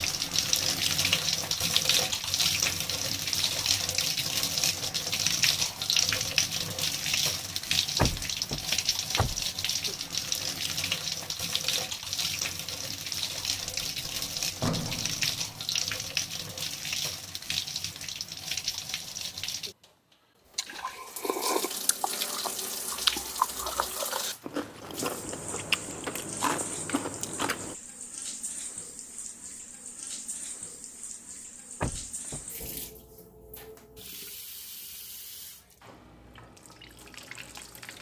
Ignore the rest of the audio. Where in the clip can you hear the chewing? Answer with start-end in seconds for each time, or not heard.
20.6-27.8.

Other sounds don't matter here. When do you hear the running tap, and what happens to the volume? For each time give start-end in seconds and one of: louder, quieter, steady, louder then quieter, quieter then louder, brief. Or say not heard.
0.0-37.9 quieter.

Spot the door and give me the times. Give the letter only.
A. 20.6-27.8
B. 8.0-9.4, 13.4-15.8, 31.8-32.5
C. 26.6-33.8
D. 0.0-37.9
B.